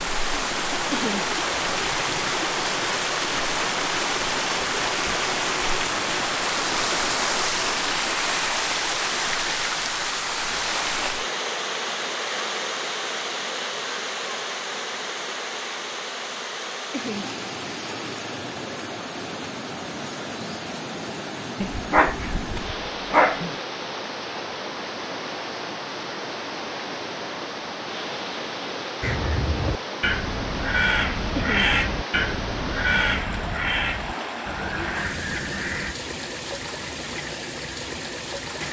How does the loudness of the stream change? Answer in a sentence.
The volume of the stream goes down.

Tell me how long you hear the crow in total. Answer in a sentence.
You can hear the crow for 7 seconds altogether.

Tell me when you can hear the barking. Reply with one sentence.
The barking can be heard from 21.6 to 23.6 s.